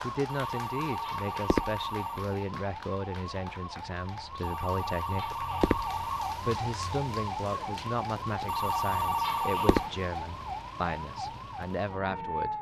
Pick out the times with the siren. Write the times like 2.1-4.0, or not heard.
0.0-12.5.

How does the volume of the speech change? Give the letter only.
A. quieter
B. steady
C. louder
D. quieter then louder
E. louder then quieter
B.